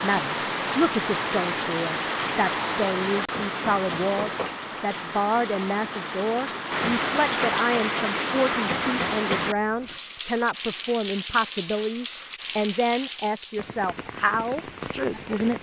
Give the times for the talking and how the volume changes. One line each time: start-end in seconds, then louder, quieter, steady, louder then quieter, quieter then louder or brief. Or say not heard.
0.0-15.5 steady.